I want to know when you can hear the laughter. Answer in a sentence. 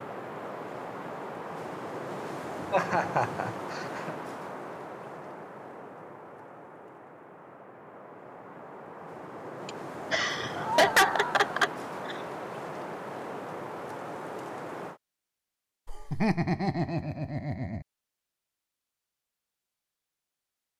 The laughter can be heard from 2.7 to 4.2 s, from 9.7 to 12.2 s and from 15.8 to 17.9 s.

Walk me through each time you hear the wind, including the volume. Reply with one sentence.
The wind can be heard from 0.0 to 15.0 s, getting quieter then louder.